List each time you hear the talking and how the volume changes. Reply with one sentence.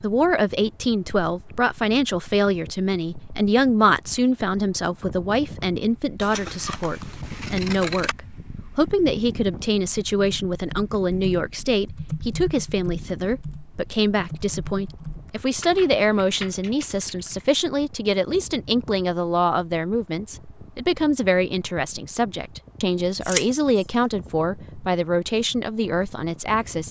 You can hear the talking from 0.0 to 26.8 s, at a steady volume.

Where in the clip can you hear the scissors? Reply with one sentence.
The scissors can be heard from 6.2 to 8.2 s and from 23.2 to 23.9 s.